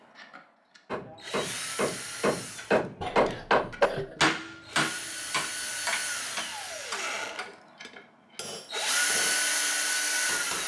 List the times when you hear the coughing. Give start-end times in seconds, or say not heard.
3.0-4.2.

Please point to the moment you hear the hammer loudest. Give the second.
4 s.